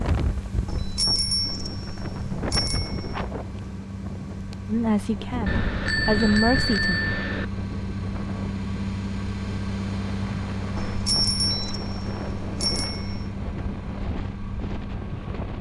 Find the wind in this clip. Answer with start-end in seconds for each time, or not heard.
0.0-15.5.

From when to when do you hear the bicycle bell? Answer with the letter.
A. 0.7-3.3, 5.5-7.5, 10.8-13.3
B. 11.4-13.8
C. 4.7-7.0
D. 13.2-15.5
A.